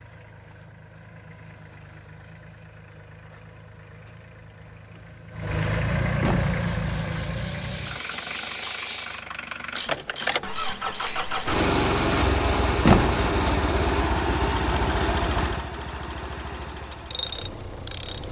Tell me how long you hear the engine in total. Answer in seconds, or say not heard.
18 s.